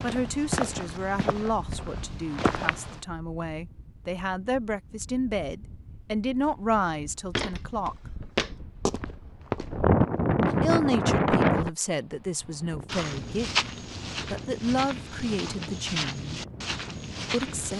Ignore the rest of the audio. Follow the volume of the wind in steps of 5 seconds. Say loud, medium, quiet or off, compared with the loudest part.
quiet, medium, loud, quiet.